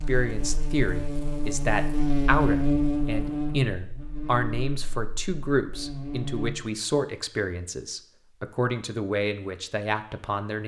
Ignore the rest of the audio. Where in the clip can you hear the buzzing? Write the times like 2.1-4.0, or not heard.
0.0-6.5.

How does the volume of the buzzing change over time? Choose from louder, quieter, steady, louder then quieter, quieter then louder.
louder then quieter.